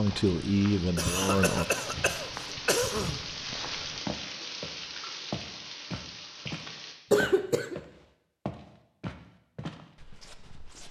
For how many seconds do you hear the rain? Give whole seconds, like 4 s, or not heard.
7 s.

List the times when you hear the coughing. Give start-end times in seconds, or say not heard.
0.9-3.2, 7.1-7.8.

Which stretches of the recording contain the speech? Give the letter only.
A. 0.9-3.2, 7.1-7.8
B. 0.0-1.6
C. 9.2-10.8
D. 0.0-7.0
B.